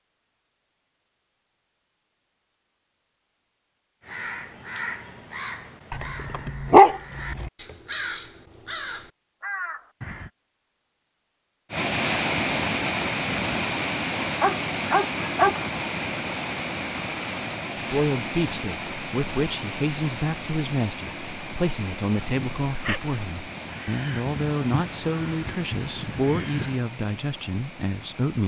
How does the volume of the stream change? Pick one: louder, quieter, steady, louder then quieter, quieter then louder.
quieter.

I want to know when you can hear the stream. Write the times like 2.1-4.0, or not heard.
11.7-28.4.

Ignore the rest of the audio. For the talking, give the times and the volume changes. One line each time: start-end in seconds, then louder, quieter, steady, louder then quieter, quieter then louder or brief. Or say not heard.
17.9-28.4 steady.